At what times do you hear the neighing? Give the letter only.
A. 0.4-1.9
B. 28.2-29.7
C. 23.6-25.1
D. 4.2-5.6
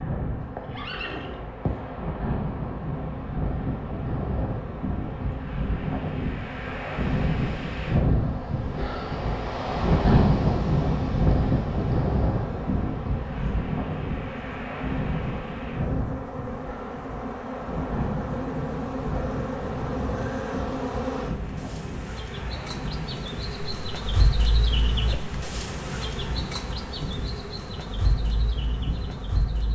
A.